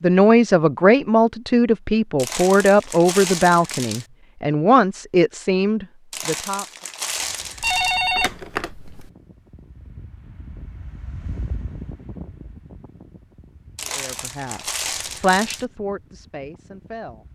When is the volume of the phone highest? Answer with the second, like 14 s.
8 s.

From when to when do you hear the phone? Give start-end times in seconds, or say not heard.
7.6-9.1.